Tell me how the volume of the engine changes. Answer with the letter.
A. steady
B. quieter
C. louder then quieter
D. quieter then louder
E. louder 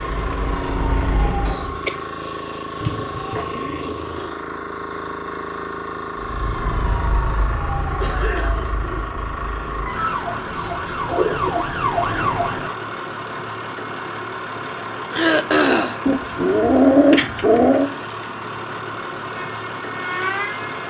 A.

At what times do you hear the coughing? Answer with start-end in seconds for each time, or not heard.
1.4-1.9, 8.0-8.8, 15.1-15.9.